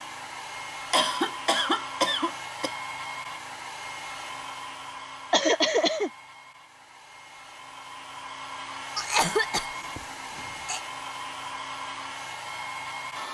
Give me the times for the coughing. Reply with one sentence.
You can hear the coughing from 0.9 to 2.7 s, from 5.3 to 6.1 s and from 8.9 to 10.8 s.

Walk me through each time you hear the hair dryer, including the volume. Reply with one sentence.
You can hear the hair dryer from 0.0 to 13.2 s, getting quieter then louder.